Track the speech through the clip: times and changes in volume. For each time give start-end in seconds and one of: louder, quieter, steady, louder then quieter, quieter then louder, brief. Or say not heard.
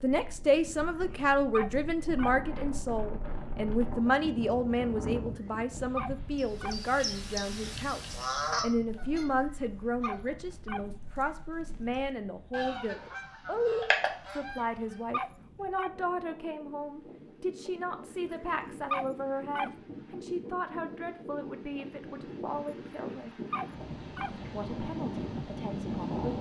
0.0-23.4 quieter
24.5-26.3 brief.